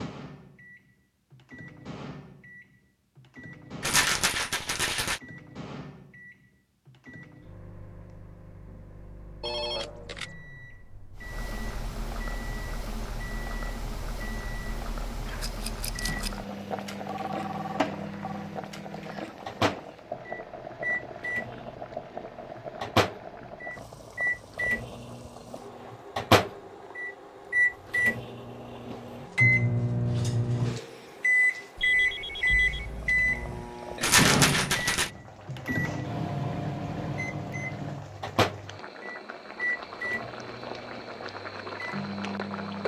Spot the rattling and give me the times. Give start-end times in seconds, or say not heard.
3.8-5.2, 15.4-16.3, 34.0-35.1.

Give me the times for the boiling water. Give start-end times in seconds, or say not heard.
11.2-42.8.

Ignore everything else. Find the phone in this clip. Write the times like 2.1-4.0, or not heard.
9.4-10.3, 17.1-18.5, 31.8-33.8.